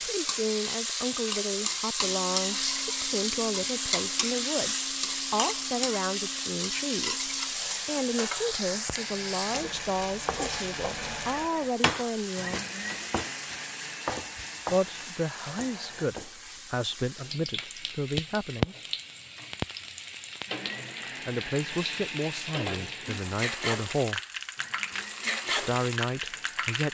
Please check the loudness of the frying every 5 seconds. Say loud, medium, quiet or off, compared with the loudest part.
loud, loud, medium, medium, medium, loud.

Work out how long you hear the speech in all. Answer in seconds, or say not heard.
21 s.